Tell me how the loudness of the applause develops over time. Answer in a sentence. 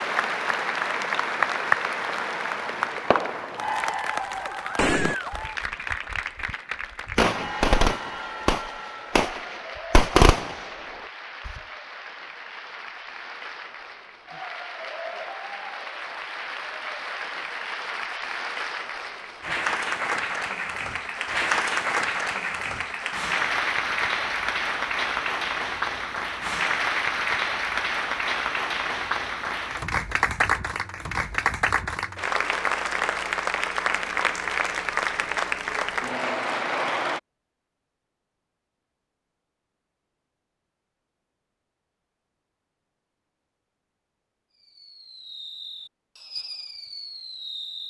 The loudness of the applause goes down, then up.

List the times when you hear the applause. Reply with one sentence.
You can hear the applause from 0.0 to 37.2 s.